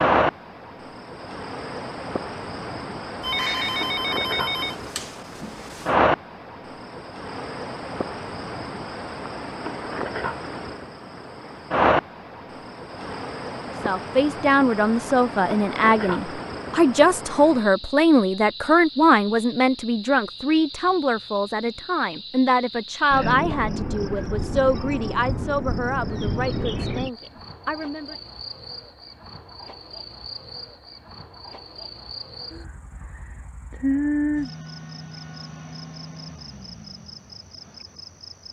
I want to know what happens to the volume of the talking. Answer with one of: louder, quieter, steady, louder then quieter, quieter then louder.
quieter.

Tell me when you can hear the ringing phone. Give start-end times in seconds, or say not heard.
3.2-6.0.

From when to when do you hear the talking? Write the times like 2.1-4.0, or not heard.
13.8-28.1.